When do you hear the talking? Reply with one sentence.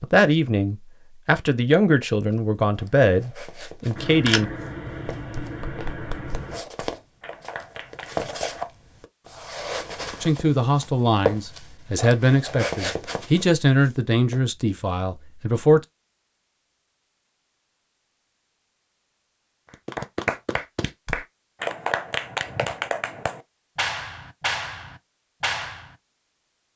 The talking can be heard from 0.0 to 4.5 s and from 10.2 to 15.8 s.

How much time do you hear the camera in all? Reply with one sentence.
You can hear the camera for 3 seconds altogether.